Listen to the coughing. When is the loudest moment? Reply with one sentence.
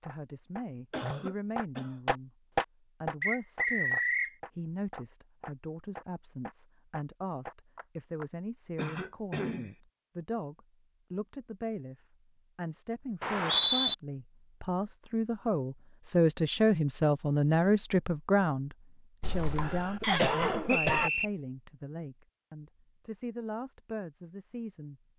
The loudest moment of the coughing is at 20 seconds.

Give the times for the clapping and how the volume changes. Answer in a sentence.
You can hear the clapping from 0.0 to 8.3 s, getting louder then quieter.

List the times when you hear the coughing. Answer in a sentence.
You can hear the coughing from 0.9 to 1.9 s, from 8.8 to 9.7 s and from 19.2 to 21.1 s.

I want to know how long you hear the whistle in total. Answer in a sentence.
The whistle can be heard for 3 seconds in total.